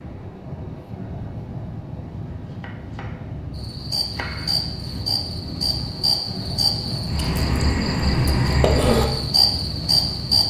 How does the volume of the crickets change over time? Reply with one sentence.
The loudness of the crickets goes up.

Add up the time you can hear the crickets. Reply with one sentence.
You can hear the crickets for 7 seconds altogether.